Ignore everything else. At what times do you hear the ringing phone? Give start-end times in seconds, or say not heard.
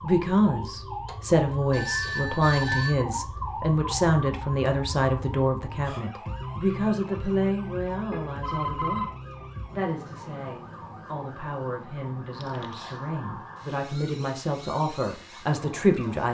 1.7-3.0, 8.1-9.2, 12.4-13.1.